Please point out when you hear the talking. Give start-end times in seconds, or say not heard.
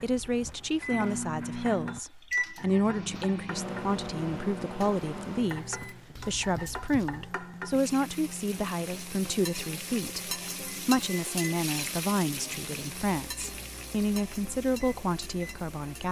0.0-16.0.